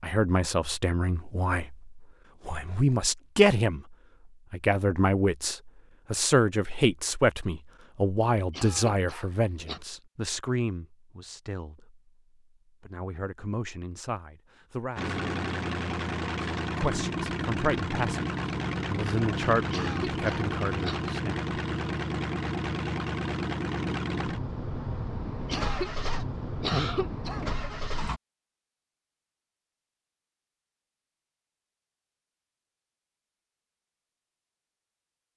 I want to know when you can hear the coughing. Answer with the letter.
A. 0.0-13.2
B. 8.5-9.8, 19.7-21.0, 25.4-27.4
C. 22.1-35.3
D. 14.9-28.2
B.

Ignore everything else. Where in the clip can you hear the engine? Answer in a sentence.
The engine can be heard from 14.9 to 28.2 s.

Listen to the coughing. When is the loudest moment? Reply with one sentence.
The loudest moment of the coughing is at 27 seconds.